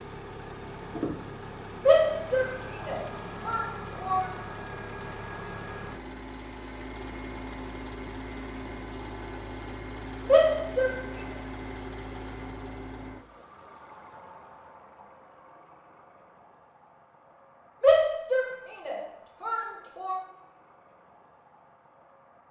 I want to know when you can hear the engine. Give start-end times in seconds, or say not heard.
0.0-22.4.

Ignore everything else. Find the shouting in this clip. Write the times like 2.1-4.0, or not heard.
1.9-4.3, 10.2-10.9, 17.8-20.2.